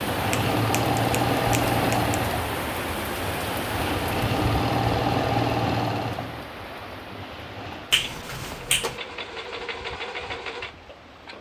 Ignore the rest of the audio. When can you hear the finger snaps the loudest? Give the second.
8 s.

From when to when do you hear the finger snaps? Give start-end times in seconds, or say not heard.
0.3-2.1, 7.9-9.0.